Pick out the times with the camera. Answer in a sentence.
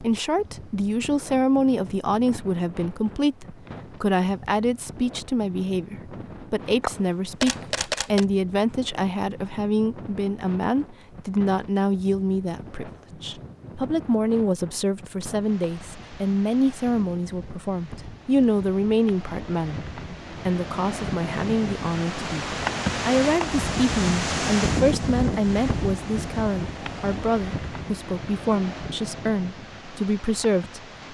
You can hear the camera from 6.8 to 8.2 s.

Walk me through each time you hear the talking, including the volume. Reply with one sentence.
You can hear the talking from 0.0 to 30.8 s, at a steady volume.